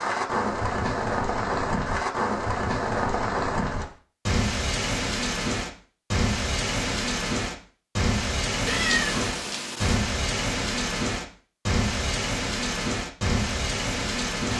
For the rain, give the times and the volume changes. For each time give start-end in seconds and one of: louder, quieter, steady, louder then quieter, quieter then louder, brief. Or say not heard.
0.0-14.5 steady.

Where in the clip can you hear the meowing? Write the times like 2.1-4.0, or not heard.
8.7-10.0.